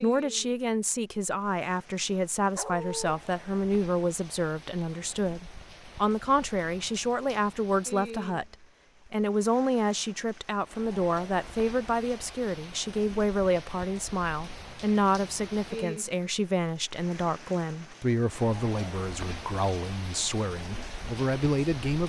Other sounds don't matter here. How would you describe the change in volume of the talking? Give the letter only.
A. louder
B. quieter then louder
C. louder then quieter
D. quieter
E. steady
E.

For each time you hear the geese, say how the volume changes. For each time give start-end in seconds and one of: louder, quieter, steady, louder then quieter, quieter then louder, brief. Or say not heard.
not heard.